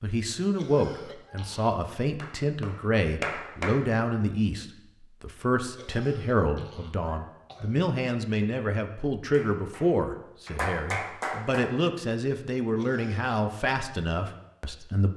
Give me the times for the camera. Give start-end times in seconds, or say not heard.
not heard.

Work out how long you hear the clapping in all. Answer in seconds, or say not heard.
4 s.